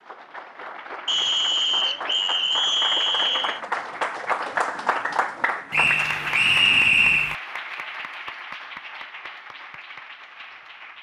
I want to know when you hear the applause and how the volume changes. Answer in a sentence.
You can hear the applause from 0.0 to 10.9 s, getting louder then quieter.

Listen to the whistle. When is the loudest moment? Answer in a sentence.
The loudest moment of the whistle is at 7 seconds.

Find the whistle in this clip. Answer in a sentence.
The whistle can be heard from 1.1 to 3.6 s and from 5.7 to 7.3 s.